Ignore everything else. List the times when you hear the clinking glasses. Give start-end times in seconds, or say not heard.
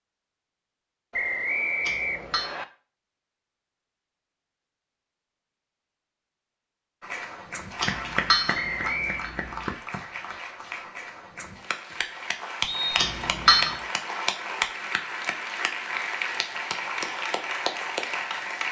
1.8-2.5, 7.8-9.7, 12.9-13.8.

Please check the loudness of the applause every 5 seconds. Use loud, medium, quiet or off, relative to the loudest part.
off, loud, loud, loud.